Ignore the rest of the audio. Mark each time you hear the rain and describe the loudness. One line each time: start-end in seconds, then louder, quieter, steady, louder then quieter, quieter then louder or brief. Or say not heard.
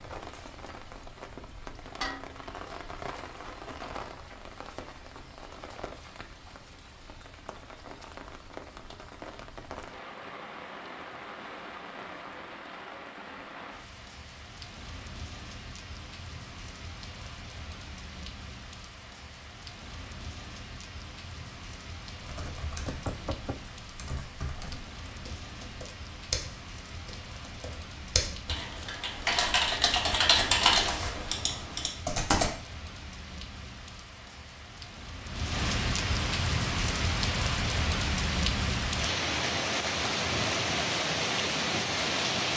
0.0-42.5 louder.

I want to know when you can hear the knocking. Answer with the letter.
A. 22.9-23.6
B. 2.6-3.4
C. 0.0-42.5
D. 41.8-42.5
A.